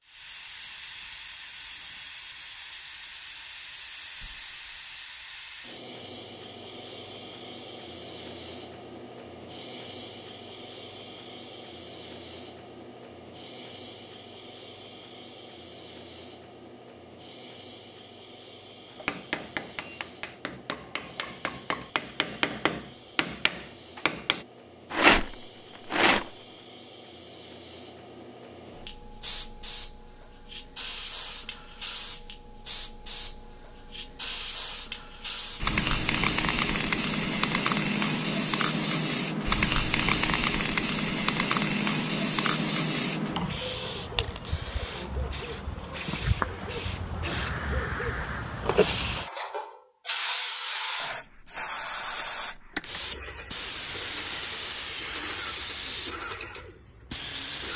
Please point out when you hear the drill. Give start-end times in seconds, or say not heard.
not heard.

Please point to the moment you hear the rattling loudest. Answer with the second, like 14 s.
25 s.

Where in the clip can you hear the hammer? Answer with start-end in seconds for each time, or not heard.
18.9-24.4.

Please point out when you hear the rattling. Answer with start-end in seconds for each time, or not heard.
24.9-26.3.